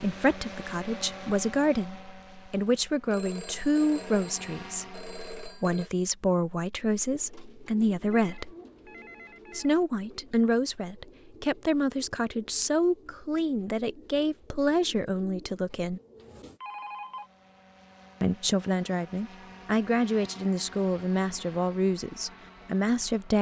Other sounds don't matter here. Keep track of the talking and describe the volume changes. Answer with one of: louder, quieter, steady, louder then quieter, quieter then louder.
steady.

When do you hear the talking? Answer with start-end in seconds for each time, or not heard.
0.0-8.6, 9.5-16.0, 18.2-23.3.